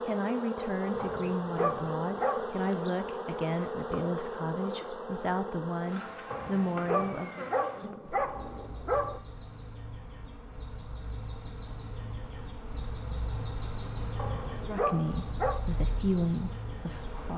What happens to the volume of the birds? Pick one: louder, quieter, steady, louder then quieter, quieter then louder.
louder.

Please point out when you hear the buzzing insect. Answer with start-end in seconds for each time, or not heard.
0.0-17.3.